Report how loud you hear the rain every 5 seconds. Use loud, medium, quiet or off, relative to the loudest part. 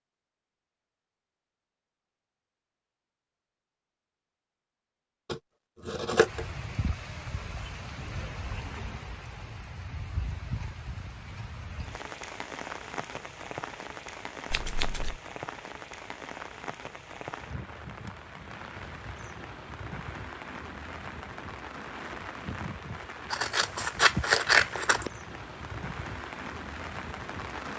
off, loud, loud, loud, loud, loud.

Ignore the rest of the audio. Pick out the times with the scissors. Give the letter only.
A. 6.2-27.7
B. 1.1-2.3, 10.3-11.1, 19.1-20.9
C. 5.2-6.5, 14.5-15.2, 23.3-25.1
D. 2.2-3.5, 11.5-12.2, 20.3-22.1
C.